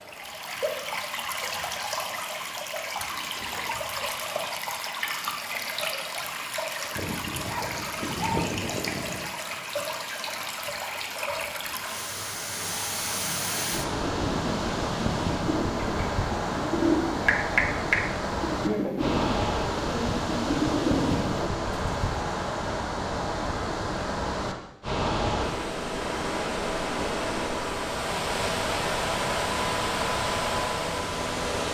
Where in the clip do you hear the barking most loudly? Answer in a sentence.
The loudest moment of the barking is at 8 seconds.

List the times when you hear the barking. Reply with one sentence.
You can hear the barking from 7.0 to 9.2 s.